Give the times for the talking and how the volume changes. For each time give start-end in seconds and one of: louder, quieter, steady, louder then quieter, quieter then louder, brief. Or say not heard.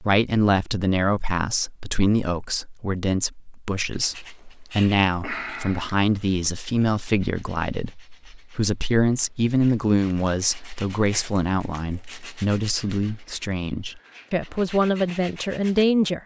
0.0-16.2 steady.